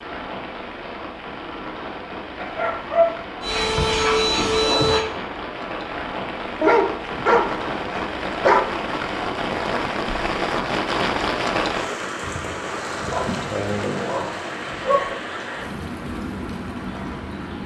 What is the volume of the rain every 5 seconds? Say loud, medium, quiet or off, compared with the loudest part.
medium, loud, loud, medium.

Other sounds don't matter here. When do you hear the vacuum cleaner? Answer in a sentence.
You can hear the vacuum cleaner from 3.4 to 5.0 s.